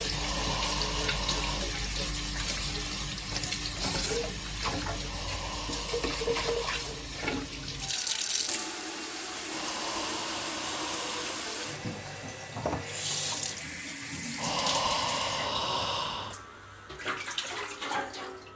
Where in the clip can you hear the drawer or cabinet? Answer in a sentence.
The drawer or cabinet can't be heard in this clip.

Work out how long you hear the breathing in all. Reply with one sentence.
The breathing can be heard for 7 seconds in total.